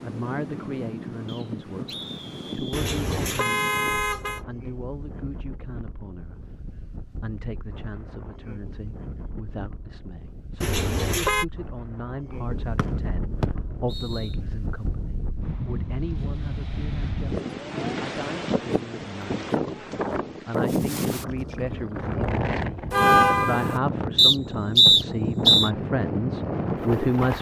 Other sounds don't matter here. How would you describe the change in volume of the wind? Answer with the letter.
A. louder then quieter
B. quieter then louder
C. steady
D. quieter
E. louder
B.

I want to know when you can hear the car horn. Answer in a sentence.
You can hear the car horn from 2.7 to 4.4 s, from 10.6 to 11.4 s and from 22.9 to 23.8 s.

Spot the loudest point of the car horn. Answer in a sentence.
The volume of the car horn peaks at 23 seconds.